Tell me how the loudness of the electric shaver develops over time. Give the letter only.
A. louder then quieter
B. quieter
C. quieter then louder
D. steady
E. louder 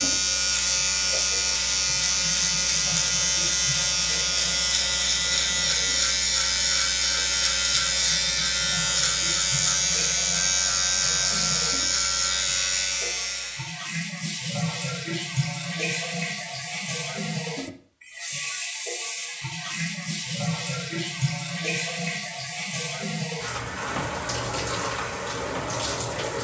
D.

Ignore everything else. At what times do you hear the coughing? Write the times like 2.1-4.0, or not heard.
not heard.